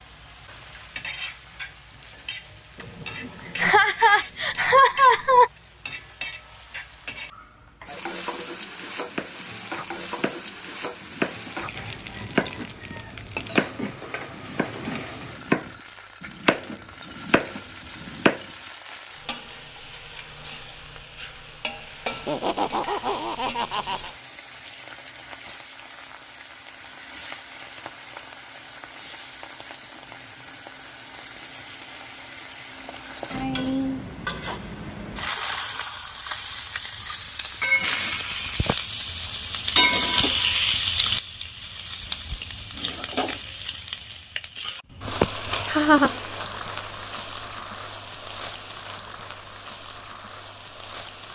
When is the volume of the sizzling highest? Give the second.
40 s.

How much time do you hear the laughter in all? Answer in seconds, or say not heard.
6 s.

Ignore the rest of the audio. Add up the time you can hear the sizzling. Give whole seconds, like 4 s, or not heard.
51 s.